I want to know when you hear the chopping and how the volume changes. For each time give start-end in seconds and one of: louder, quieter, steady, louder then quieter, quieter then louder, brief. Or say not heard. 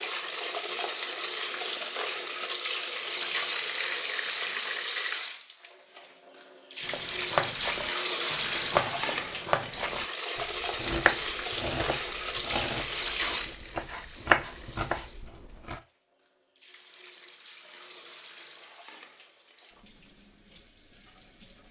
6.8-15.8 quieter then louder.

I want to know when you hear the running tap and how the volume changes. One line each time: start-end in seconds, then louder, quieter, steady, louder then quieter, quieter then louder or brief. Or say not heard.
0.0-21.6 quieter.